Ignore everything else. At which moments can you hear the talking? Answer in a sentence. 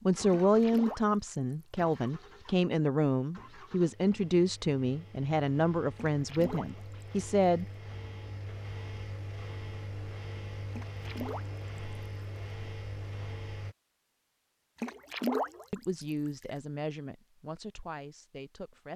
The talking can be heard from 0.0 to 7.7 s and from 15.7 to 18.9 s.